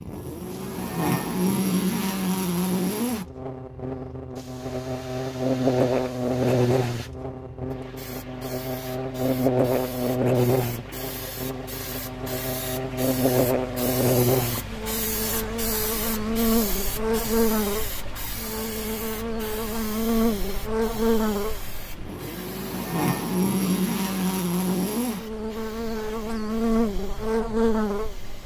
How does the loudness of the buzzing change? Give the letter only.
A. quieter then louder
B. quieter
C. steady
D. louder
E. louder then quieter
C.